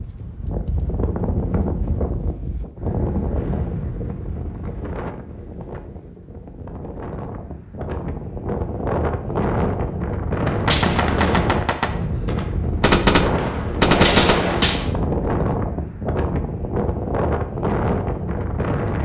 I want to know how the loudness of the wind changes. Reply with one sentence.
The loudness of the wind goes down, then up.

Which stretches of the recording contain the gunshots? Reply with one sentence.
You can hear the gunshots from 10.4 to 14.9 s.